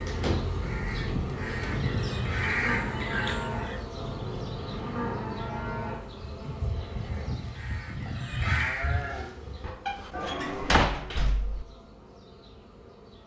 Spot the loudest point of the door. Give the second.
11 s.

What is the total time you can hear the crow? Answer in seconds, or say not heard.
6 s.